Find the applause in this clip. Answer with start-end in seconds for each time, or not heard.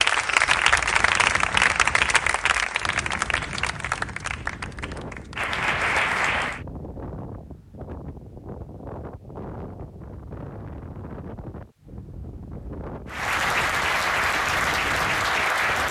0.0-6.6, 13.1-15.8.